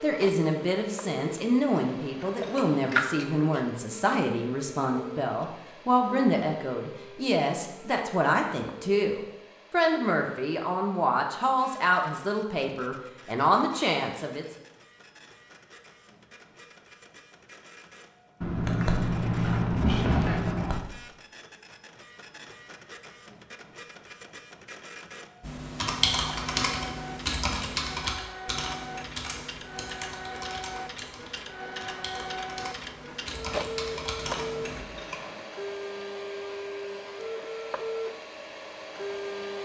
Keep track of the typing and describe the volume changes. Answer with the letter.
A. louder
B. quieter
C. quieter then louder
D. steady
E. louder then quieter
C.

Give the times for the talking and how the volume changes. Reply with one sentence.
You can hear the talking from 0.0 to 14.4 s, at a steady volume.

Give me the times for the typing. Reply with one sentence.
The typing can be heard from 25.4 to 34.9 s.